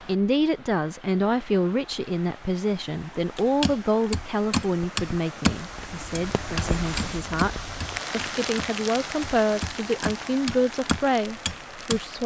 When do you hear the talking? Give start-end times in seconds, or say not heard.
0.1-12.2.